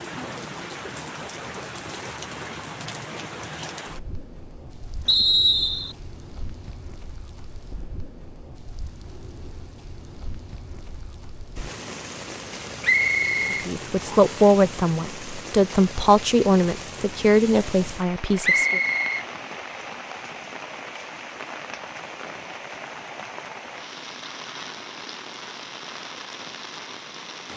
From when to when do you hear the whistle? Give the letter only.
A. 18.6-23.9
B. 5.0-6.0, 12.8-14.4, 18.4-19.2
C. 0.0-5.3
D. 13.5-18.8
B.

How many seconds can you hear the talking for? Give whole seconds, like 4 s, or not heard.
5 s.